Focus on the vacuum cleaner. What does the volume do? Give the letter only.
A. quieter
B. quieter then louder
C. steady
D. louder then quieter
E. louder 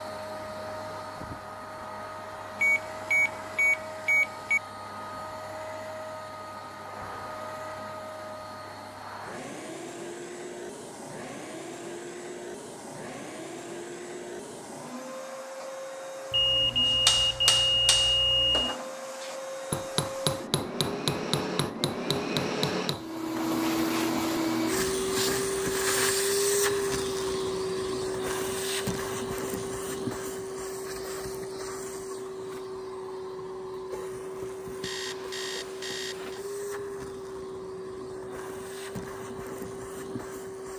D.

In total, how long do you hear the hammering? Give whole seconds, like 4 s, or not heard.
6 s.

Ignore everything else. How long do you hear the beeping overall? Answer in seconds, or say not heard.
6 s.